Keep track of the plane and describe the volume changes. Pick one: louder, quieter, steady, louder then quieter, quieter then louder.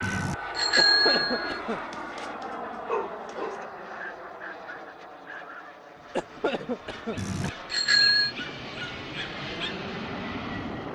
quieter then louder.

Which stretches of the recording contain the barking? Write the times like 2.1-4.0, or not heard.
1.7-9.8.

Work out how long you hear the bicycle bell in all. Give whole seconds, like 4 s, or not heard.
3 s.